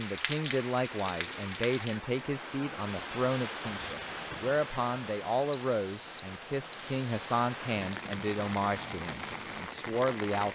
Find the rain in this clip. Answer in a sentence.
You can hear the rain from 0.0 to 10.5 s.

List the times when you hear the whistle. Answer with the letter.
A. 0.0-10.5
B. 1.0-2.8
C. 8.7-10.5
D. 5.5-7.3
D.